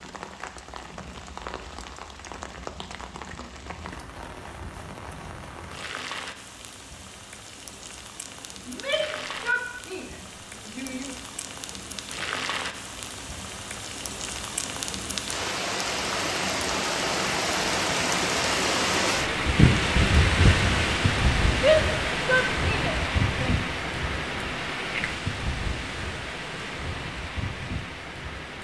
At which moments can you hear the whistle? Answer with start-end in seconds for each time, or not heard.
not heard.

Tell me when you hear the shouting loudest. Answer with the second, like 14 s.
22 s.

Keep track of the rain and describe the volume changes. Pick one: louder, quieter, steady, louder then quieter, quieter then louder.
louder then quieter.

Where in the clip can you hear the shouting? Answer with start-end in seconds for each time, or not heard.
8.7-11.2, 21.6-23.6.